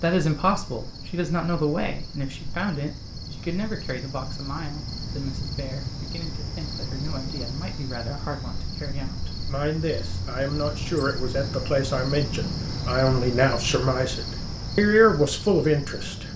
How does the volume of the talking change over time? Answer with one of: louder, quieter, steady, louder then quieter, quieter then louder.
quieter then louder.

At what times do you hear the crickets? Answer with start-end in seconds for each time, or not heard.
0.0-16.3.